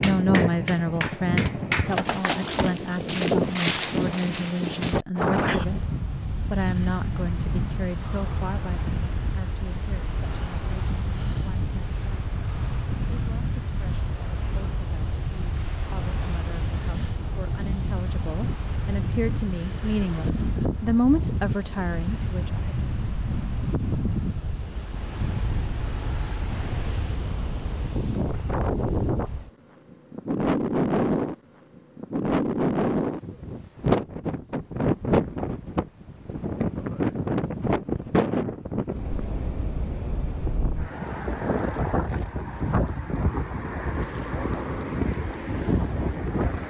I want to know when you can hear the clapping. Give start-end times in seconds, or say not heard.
0.0-2.4.